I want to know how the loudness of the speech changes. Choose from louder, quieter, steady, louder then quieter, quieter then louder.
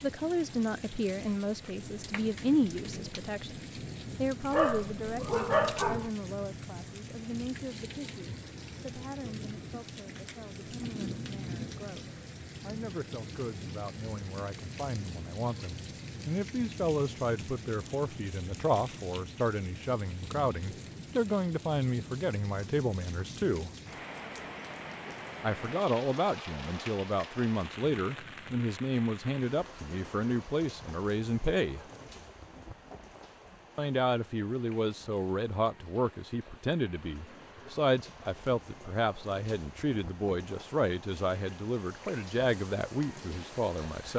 quieter then louder.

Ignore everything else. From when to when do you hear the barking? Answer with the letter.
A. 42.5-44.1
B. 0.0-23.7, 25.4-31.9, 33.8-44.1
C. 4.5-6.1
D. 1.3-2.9
C.